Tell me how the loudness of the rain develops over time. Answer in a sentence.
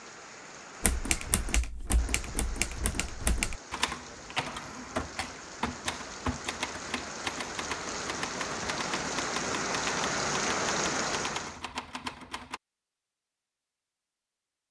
The volume of the rain goes up.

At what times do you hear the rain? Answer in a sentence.
You can hear the rain from 0.0 to 11.6 s.